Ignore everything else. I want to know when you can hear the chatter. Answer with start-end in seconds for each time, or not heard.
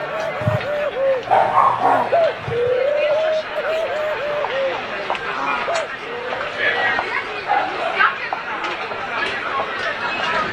0.0-10.4.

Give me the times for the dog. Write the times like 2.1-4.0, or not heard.
0.4-3.2, 6.7-8.1.